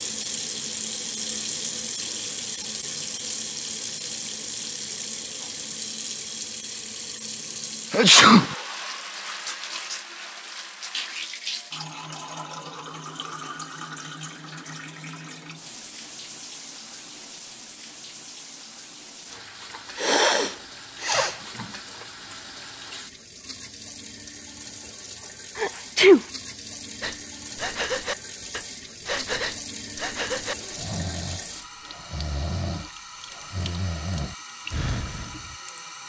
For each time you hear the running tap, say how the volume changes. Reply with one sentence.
The running tap can be heard from 0.0 to 36.0 s, getting quieter.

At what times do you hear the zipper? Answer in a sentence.
The zipper can't be heard in this clip.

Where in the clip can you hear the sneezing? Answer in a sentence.
The sneezing can be heard from 7.9 to 8.4 s, from 19.9 to 21.6 s and from 25.6 to 26.2 s.